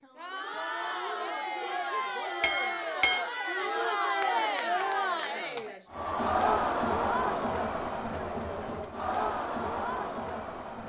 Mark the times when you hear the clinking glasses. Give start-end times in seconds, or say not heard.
2.4-3.2.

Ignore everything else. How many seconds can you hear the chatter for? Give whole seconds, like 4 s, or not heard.
11 s.